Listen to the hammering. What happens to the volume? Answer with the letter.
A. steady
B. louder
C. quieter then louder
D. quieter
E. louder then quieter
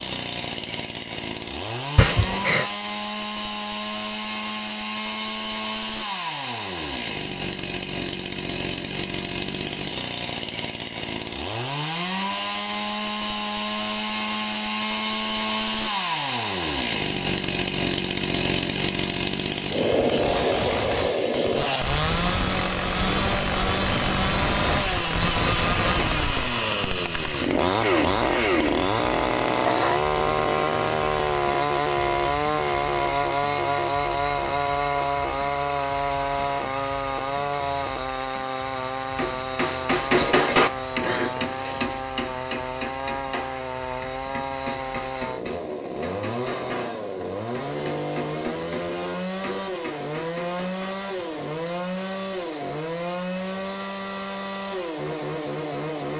D.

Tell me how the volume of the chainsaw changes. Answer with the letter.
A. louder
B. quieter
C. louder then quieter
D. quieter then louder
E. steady
C.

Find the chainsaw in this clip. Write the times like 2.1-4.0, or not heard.
0.0-56.1.